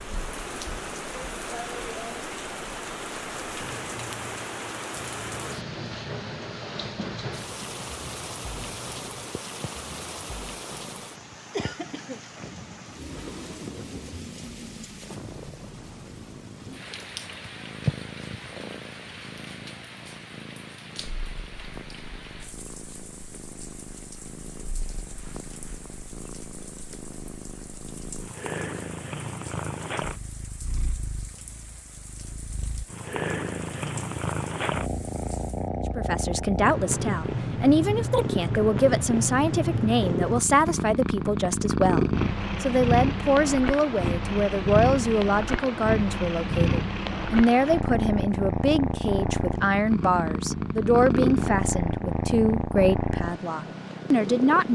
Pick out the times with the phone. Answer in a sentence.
The phone can't be heard in this clip.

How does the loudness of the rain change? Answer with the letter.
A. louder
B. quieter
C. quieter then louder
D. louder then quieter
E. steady
B.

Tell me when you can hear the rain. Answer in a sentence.
You can hear the rain from 0.0 to 35.7 s.